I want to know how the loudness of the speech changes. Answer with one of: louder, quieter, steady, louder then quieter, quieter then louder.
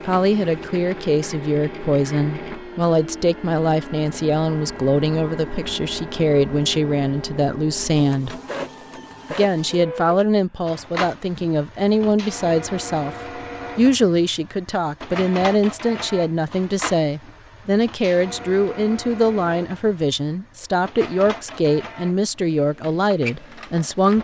steady.